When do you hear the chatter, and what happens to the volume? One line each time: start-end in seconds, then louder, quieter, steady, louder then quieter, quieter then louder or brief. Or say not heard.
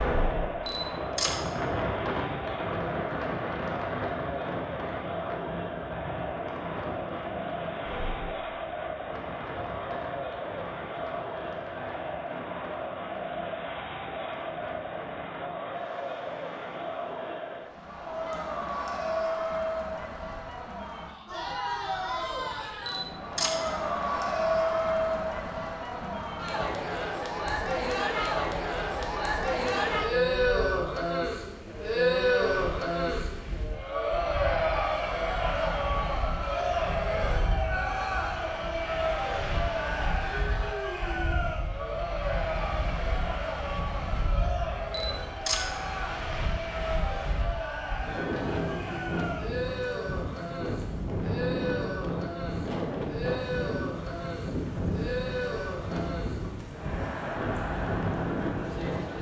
0.1-59.1 louder then quieter.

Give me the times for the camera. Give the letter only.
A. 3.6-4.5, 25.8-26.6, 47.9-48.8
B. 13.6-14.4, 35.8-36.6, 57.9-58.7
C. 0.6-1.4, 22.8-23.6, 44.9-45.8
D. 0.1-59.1
C.